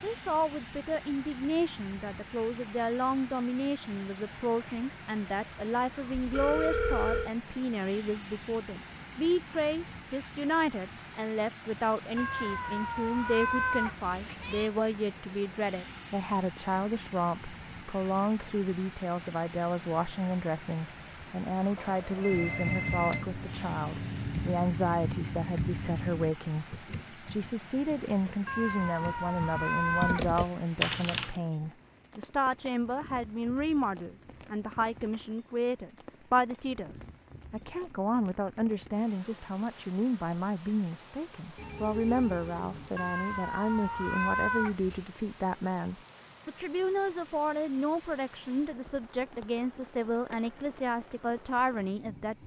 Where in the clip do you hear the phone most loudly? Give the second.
7 s.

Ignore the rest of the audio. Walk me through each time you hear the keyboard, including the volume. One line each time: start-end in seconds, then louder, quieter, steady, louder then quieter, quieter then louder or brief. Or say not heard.
22.3-31.4 quieter then louder.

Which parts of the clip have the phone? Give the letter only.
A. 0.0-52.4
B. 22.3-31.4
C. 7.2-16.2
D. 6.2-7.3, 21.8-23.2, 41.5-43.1
D.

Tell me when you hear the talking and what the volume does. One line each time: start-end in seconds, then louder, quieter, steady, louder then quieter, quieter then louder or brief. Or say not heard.
0.0-52.4 steady.